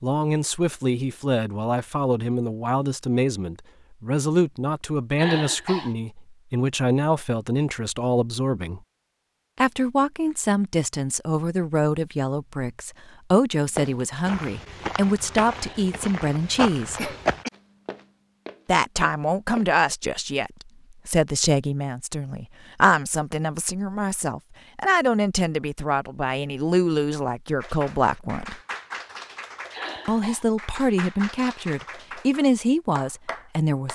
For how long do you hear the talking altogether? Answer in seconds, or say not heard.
30 s.